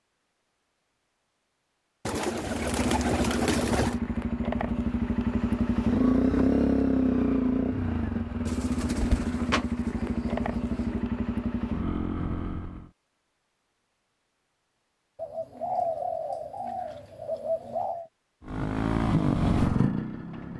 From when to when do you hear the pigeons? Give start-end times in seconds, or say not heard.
2.0-4.0, 8.4-11.1, 15.2-18.1.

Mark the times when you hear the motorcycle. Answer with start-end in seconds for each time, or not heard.
2.4-12.9, 18.4-20.5.